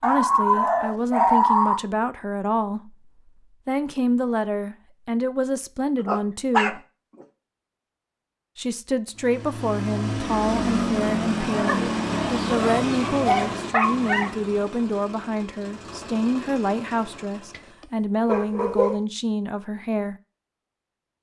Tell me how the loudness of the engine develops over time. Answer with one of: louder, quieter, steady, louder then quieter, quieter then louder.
quieter.